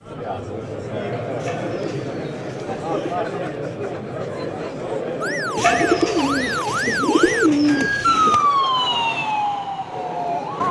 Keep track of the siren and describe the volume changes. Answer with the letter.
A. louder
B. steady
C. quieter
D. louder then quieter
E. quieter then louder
D.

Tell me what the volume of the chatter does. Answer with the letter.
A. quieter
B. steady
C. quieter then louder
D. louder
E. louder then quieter
A.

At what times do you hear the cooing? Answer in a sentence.
The cooing can be heard from 1.4 to 3.1 s and from 5.5 to 8.4 s.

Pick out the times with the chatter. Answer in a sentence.
The chatter can be heard from 0.0 to 10.6 s.